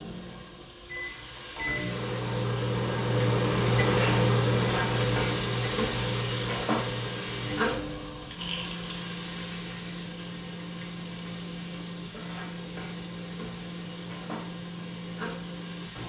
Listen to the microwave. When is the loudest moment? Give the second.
4 s.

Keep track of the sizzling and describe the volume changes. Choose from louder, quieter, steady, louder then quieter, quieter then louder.
louder then quieter.